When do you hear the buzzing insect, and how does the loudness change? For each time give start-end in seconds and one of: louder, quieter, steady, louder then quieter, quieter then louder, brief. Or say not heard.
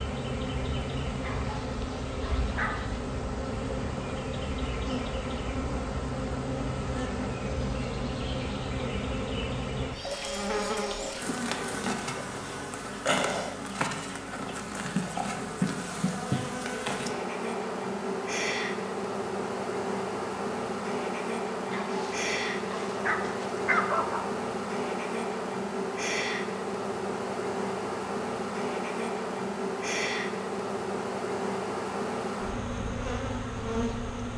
0.0-34.3 steady.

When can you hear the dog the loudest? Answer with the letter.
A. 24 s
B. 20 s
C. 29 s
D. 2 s
A.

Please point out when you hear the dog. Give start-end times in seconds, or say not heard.
1.2-3.0, 21.7-24.2.